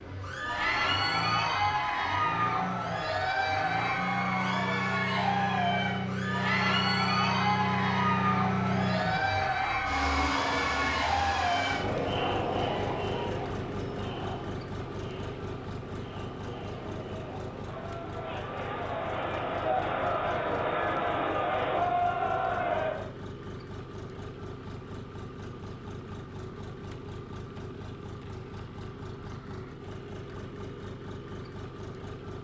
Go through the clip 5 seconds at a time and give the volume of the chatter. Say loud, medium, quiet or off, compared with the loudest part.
loud, loud, loud, medium, loud, off, off.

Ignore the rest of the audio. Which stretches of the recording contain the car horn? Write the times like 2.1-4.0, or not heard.
not heard.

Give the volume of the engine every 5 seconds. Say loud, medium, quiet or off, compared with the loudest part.
medium, loud, loud, medium, medium, medium, medium.